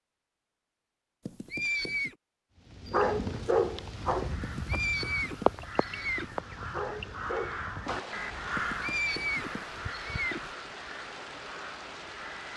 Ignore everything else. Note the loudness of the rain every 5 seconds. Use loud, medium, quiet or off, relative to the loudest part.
loud, loud, medium.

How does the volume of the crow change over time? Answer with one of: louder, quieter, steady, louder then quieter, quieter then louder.
louder then quieter.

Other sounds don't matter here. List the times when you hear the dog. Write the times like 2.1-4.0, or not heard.
2.9-4.3, 6.7-8.2.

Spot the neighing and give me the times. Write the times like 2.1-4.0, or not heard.
1.2-2.1, 4.4-6.4, 8.6-10.5.